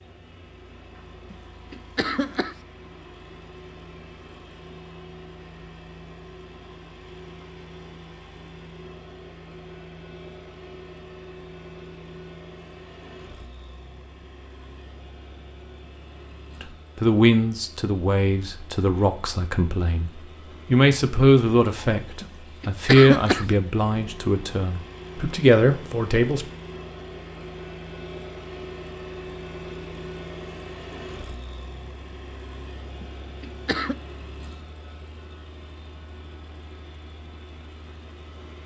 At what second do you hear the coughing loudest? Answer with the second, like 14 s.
23 s.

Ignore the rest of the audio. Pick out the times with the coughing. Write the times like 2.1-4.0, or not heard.
1.3-2.5, 22.2-23.4, 33.0-34.0.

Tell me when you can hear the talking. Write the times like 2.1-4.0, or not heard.
16.6-26.4.